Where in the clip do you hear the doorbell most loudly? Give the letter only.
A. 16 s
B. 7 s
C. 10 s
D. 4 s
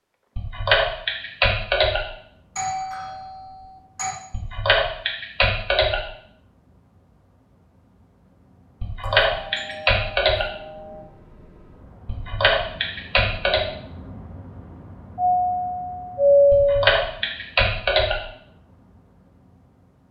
A.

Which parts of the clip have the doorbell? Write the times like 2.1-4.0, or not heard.
2.5-4.2, 9.0-11.1, 15.2-17.0.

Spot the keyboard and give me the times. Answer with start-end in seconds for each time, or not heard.
0.3-2.0, 4.3-6.0, 8.8-10.4, 12.1-13.7, 16.5-18.2.